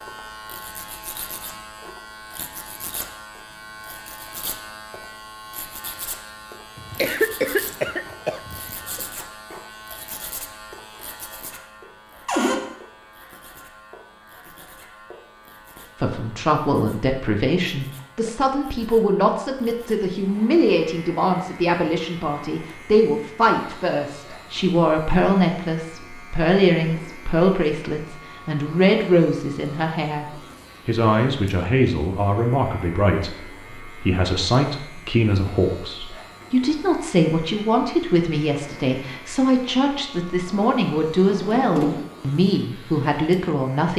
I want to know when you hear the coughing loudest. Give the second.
7 s.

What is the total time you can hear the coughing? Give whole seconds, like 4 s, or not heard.
2 s.